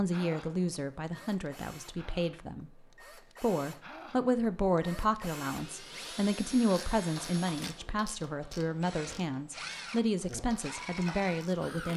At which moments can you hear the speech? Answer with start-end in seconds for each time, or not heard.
0.0-11.9.